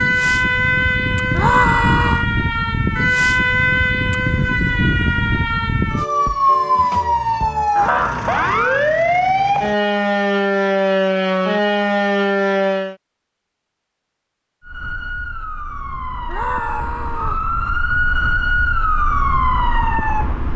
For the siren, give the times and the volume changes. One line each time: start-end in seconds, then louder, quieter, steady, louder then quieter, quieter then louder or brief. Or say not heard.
0.0-12.9 steady
14.6-20.5 louder.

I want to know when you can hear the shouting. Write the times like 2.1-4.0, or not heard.
1.3-2.2, 7.8-8.9, 16.2-17.4.